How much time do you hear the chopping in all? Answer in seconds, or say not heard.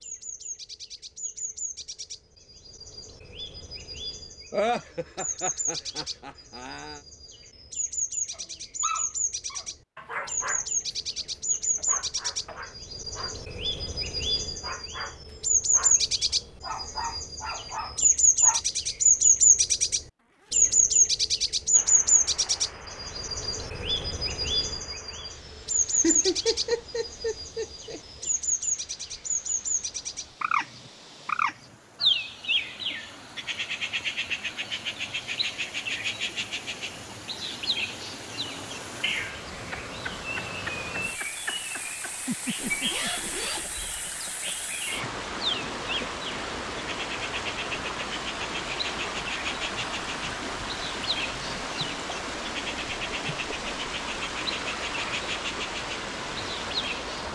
not heard.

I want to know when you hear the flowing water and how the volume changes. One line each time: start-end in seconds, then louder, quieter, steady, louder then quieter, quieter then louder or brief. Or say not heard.
21.7-57.3 louder.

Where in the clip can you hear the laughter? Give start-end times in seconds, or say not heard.
4.5-7.0, 26.0-28.0, 42.2-44.7.